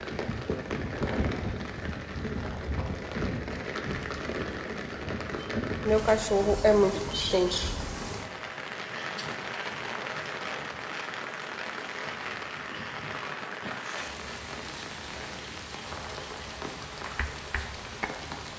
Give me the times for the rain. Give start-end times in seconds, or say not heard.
0.0-18.5.